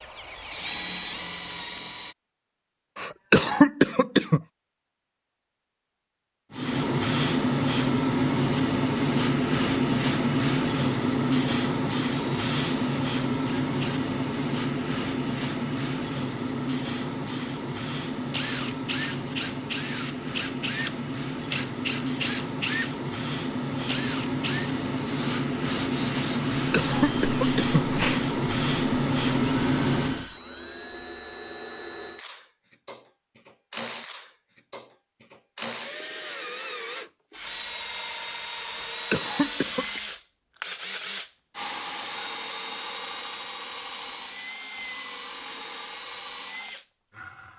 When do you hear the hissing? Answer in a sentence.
The hissing can be heard from 6.5 to 30.2 s.